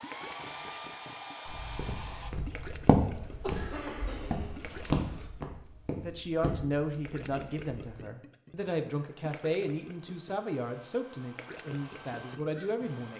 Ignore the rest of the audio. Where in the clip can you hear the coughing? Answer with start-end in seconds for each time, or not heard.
3.1-4.7.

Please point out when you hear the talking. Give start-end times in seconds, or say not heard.
6.0-13.1.